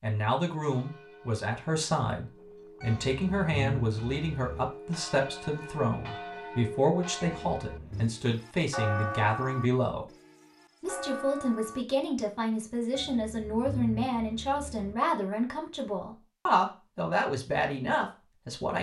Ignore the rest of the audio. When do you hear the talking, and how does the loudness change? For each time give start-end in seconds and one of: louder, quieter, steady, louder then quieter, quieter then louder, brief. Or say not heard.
0.0-10.1 steady
10.8-18.7 steady.